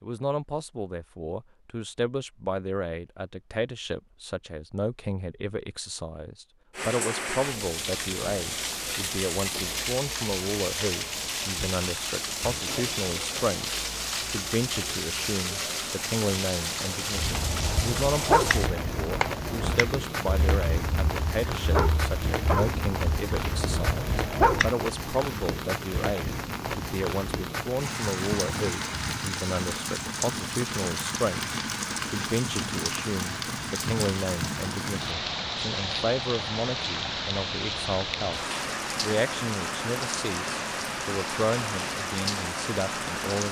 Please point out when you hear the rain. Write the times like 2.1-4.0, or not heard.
6.7-43.4.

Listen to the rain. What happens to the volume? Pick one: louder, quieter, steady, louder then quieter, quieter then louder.
steady.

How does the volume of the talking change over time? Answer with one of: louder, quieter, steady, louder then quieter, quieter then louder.
steady.